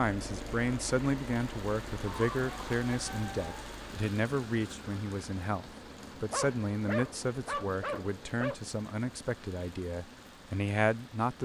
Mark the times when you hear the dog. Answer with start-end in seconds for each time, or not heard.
2.0-3.5, 6.3-8.6.